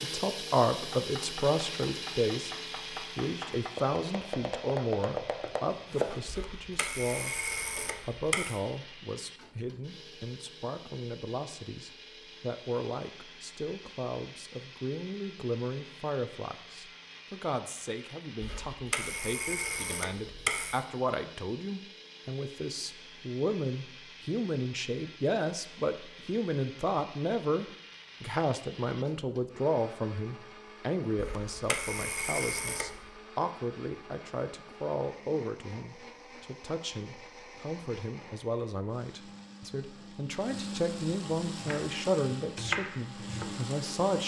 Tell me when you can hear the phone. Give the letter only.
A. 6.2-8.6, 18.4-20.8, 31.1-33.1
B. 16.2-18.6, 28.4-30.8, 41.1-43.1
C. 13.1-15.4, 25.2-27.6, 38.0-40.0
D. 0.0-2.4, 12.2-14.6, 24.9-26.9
A.